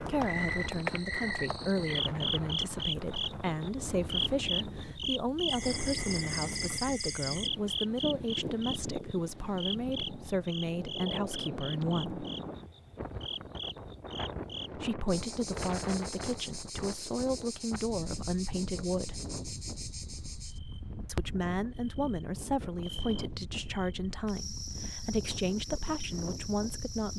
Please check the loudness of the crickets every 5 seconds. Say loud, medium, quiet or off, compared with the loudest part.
loud, loud, medium, medium, medium, medium.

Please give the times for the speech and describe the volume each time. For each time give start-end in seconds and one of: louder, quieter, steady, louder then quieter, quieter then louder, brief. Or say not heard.
0.0-12.2 steady
14.8-19.2 steady
21.1-27.1 steady.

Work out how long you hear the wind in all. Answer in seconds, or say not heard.
27 s.